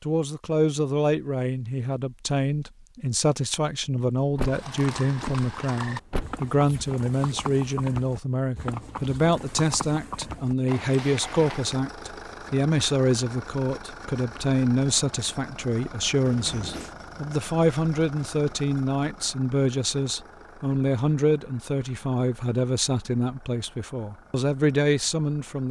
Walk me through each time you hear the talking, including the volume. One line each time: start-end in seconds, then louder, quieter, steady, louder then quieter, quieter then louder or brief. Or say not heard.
0.0-25.6 steady.